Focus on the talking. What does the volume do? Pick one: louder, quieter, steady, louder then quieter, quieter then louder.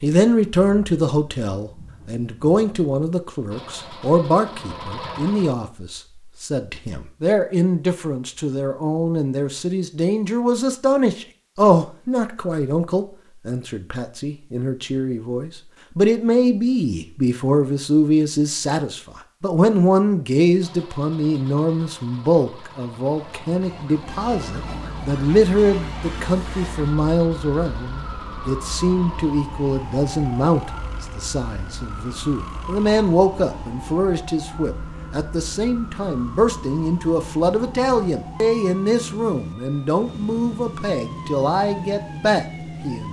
steady.